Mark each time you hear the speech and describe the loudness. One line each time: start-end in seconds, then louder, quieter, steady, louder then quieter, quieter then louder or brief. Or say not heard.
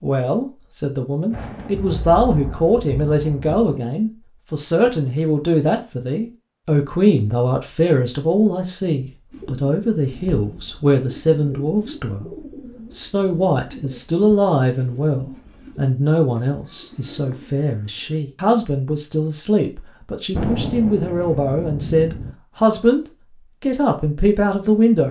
0.0-25.0 steady.